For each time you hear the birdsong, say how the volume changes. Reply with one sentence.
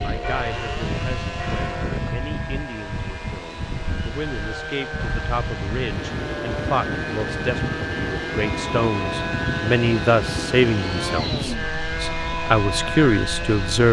You can't hear the birdsong here.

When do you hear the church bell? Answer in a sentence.
You can hear the church bell from 0.0 to 2.0 s.